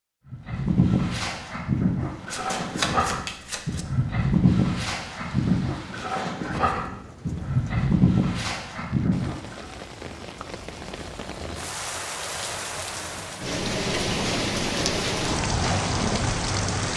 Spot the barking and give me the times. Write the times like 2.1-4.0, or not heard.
0.3-9.7.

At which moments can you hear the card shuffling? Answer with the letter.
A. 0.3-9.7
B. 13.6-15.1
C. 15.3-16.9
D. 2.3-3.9
D.